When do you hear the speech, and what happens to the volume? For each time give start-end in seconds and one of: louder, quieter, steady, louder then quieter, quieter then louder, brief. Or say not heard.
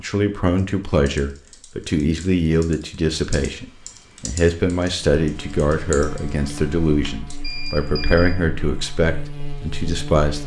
0.0-10.4 steady.